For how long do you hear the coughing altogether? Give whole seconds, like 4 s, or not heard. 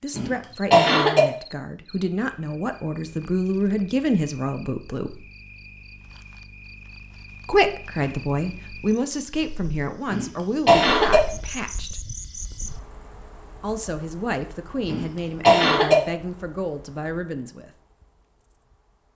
3 s.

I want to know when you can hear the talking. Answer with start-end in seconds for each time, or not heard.
0.0-5.2, 7.5-12.0, 13.6-17.7.